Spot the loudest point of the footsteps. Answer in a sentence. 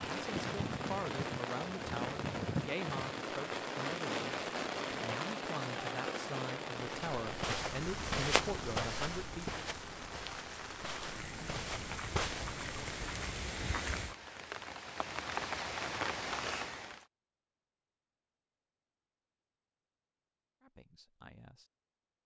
The volume of the footsteps peaks at 8 seconds.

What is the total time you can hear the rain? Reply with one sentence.
You can hear the rain for 17 seconds altogether.